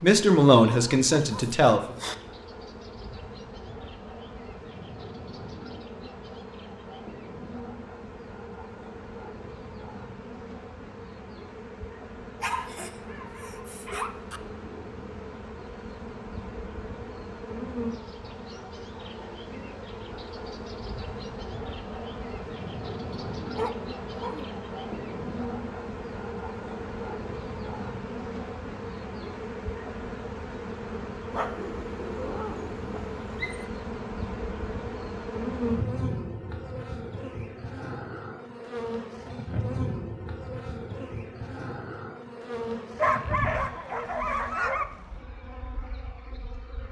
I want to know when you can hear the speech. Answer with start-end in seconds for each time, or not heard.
0.0-1.9.